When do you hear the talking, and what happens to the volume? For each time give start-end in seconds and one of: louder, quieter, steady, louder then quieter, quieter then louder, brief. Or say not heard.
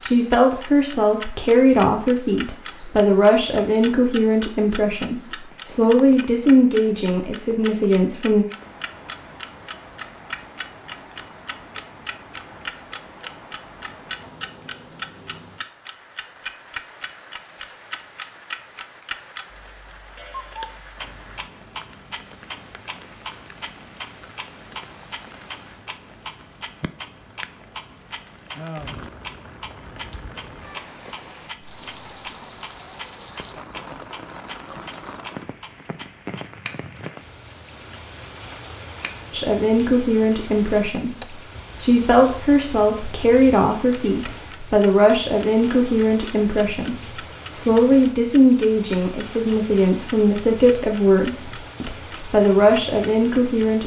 0.0-8.4 steady
39.3-53.8 steady.